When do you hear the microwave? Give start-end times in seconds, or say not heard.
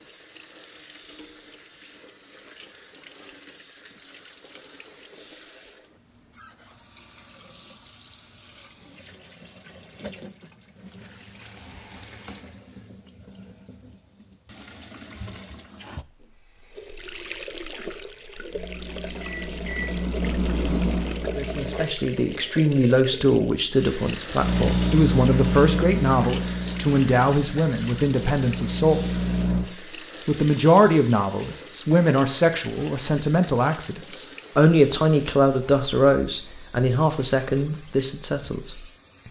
18.4-21.9, 24.4-29.6.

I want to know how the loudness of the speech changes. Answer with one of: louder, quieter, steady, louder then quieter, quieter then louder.
steady.